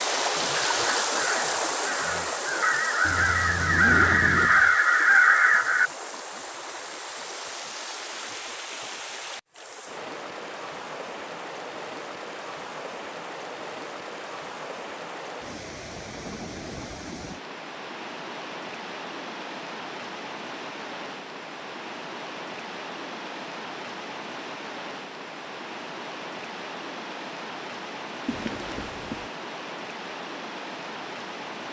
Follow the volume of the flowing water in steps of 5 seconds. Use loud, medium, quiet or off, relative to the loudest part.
loud, medium, medium, medium, medium, medium, medium.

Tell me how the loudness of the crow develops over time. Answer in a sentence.
The volume of the crow goes up.